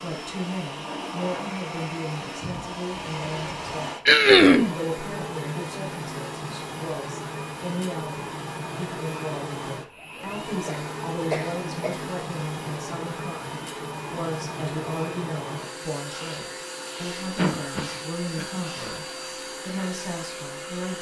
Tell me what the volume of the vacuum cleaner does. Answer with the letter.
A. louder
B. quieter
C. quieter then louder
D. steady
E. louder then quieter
D.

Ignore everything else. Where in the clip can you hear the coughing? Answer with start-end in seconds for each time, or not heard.
4.0-4.7, 10.7-12.1, 17.4-18.6.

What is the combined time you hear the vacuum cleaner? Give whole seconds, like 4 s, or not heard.
21 s.